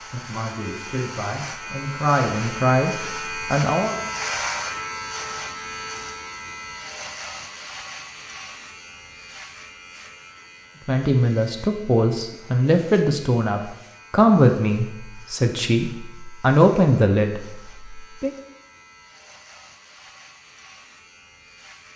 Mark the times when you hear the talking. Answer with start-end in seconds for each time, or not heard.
0.1-4.0, 10.8-18.3.